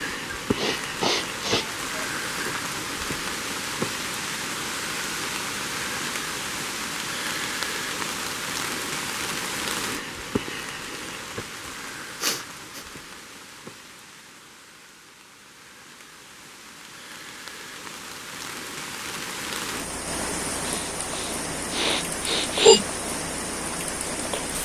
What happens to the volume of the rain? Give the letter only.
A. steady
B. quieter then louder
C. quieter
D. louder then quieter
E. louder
B.